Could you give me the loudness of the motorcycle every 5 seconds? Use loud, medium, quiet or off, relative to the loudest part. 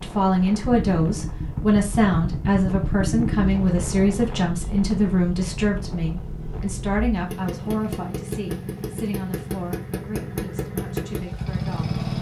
loud, medium, loud.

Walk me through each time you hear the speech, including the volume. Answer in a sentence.
The speech can be heard from 0.0 to 12.1 s, getting quieter.